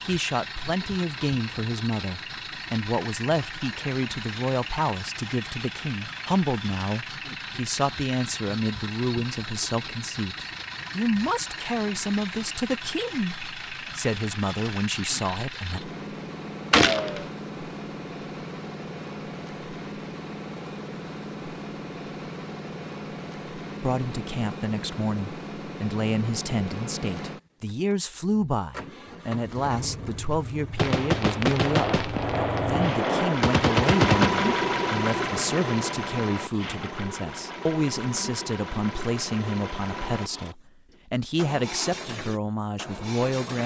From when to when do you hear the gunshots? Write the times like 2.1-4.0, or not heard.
16.7-17.2, 30.8-34.3.